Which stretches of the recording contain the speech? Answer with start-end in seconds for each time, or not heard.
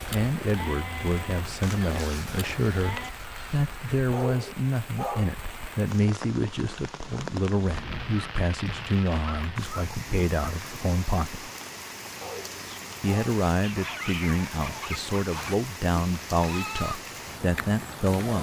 0.0-11.5, 13.0-18.3.